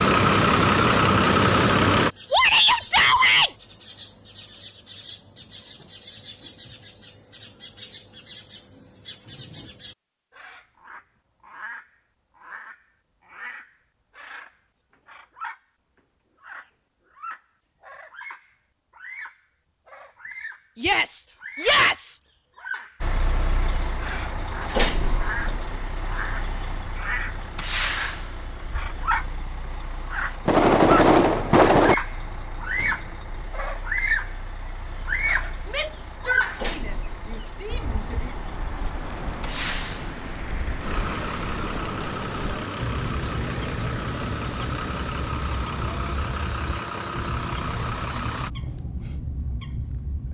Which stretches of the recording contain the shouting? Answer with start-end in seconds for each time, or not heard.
2.3-3.5, 20.8-22.2, 35.6-38.3.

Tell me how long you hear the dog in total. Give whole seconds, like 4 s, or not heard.
not heard.